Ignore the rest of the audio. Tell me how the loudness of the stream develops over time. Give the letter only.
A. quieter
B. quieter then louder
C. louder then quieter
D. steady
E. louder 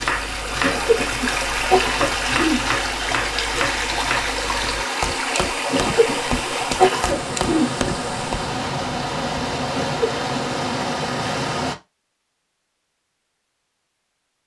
D.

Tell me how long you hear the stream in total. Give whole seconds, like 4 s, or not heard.
12 s.